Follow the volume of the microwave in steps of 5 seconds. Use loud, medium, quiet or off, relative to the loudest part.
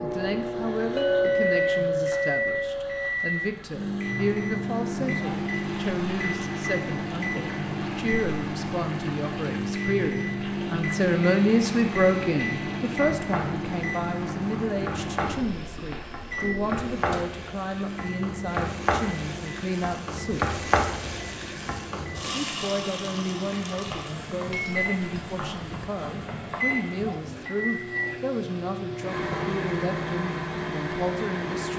loud, loud, loud, medium, medium, loud, loud.